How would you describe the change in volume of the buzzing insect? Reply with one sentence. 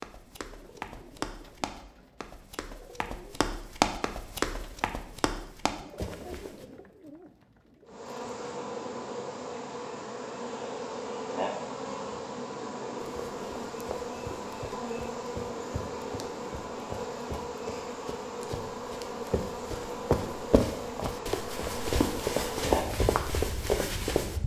The loudness of the buzzing insect stays about the same.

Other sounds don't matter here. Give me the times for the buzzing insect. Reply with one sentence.
You can hear the buzzing insect from 7.8 to 24.4 s.